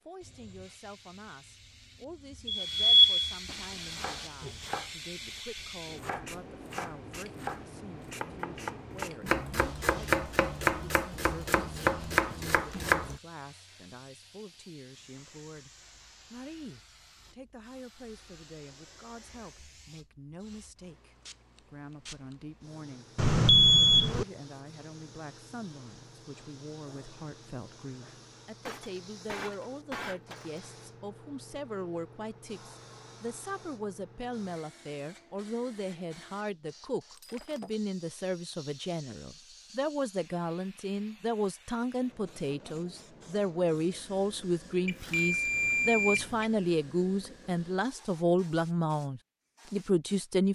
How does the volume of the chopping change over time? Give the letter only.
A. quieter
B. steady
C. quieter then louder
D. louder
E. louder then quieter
D.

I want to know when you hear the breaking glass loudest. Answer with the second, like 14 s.
30 s.